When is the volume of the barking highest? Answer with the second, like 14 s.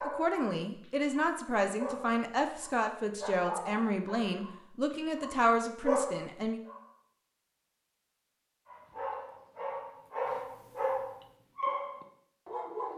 6 s.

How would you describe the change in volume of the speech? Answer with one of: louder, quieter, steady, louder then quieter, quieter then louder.
steady.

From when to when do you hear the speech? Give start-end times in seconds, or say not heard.
0.0-6.6.